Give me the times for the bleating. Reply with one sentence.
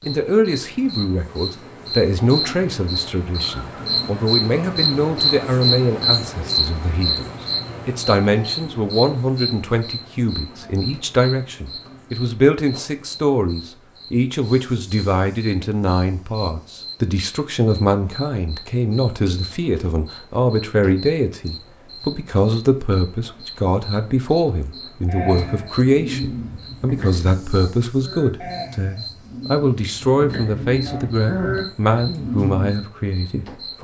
The bleating can be heard from 25.1 to 32.9 s.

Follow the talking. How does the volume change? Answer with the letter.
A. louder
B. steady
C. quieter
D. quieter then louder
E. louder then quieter
B.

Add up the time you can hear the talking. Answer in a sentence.
You can hear the talking for 34 seconds altogether.